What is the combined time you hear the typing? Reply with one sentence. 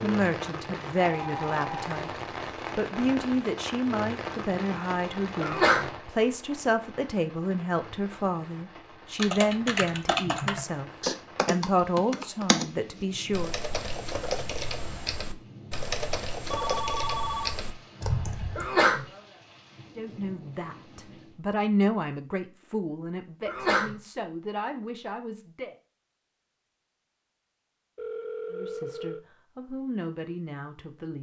You can hear the typing for 9 seconds altogether.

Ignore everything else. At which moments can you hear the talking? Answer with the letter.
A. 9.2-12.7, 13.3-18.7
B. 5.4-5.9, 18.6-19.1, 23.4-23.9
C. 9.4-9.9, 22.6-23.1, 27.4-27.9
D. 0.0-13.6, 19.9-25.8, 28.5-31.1
D.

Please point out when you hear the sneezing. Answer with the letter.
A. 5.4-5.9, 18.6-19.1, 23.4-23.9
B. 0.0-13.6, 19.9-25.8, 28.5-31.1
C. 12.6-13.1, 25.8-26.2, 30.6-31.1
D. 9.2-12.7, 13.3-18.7
A.